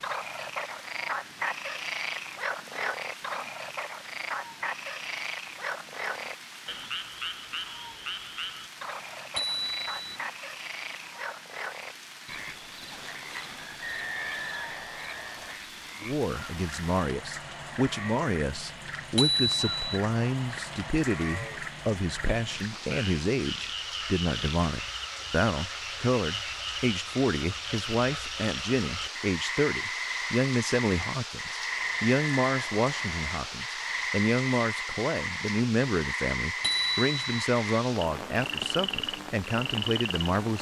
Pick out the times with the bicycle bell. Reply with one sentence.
You can hear the bicycle bell from 9.3 to 10.2 s, from 19.1 to 19.8 s and from 36.6 to 37.5 s.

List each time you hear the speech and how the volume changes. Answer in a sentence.
The speech can be heard from 16.0 to 40.5 s, at a steady volume.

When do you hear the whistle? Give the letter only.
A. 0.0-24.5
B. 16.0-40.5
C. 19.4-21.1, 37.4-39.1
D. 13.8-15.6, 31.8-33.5
D.